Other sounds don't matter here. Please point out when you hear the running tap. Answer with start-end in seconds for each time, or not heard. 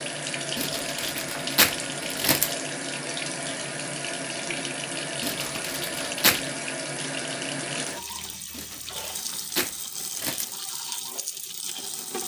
0.0-12.2.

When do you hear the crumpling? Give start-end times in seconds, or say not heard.
0.6-2.5, 5.2-6.5, 8.5-10.5.